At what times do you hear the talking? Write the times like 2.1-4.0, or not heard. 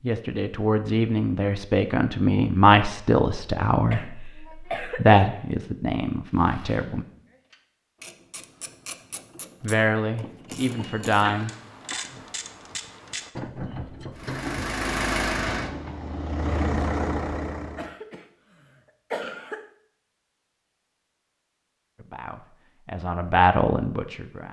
0.0-7.0, 9.6-11.5, 21.9-24.4.